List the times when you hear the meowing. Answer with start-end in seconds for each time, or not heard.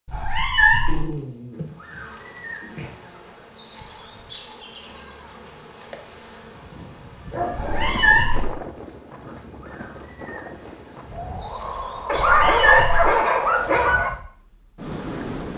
0.1-1.1, 7.5-8.6, 12.1-13.2.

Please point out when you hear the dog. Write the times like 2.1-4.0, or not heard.
0.8-2.9, 7.3-8.0, 12.1-14.1.